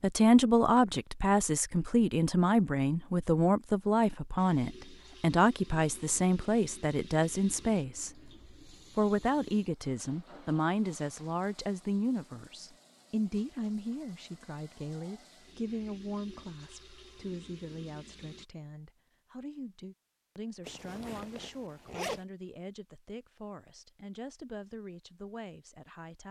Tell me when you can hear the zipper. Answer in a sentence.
You can hear the zipper from 20.6 to 22.2 s.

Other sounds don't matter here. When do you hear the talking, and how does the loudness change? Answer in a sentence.
The talking can be heard from 0.0 to 8.3 s, at a steady volume; and from 8.9 to 26.2 s, getting quieter.